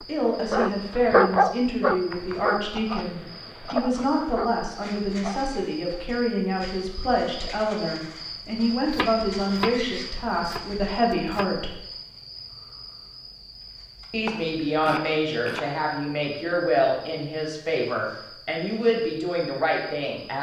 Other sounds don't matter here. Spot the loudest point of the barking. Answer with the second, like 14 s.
1 s.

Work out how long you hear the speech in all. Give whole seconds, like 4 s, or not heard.
18 s.